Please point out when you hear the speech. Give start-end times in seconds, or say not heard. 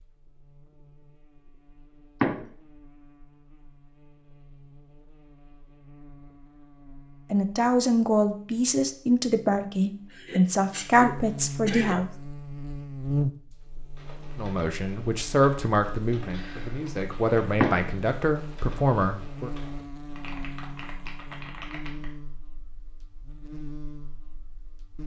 7.3-12.1, 14.3-19.5.